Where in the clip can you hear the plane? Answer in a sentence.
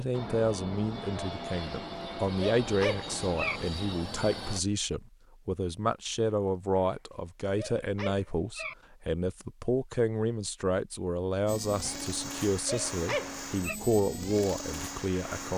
You can hear the plane from 0.0 to 4.6 s and from 11.4 to 15.5 s.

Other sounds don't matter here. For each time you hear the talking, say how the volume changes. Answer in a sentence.
You can hear the talking from 0.0 to 15.5 s, at a steady volume.